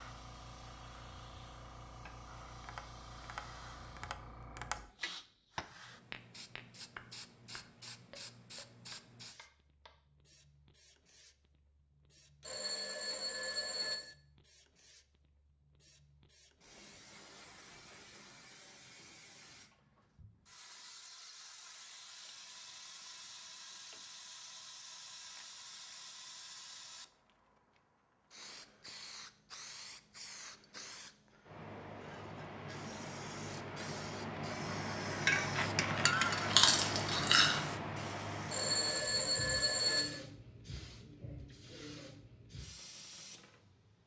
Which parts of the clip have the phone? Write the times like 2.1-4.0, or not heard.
12.4-14.2, 38.5-40.2.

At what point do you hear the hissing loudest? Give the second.
36 s.